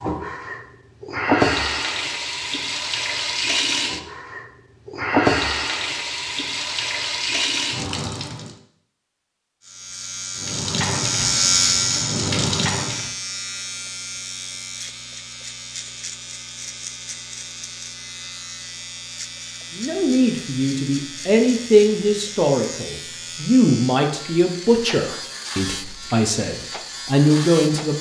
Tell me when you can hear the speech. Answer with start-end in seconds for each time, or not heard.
19.8-27.9.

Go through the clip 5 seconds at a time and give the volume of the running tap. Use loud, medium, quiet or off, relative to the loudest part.
loud, loud, loud, off, off, off.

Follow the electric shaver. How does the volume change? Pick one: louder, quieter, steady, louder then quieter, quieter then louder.
quieter.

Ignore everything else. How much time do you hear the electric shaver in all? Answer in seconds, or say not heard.
18 s.